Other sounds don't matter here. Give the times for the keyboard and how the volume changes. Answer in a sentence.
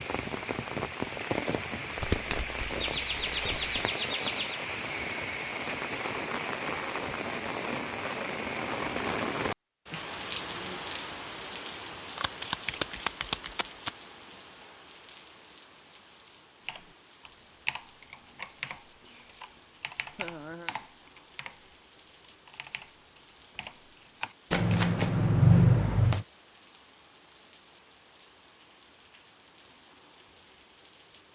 You can hear the keyboard from 16.6 to 24.4 s, getting quieter.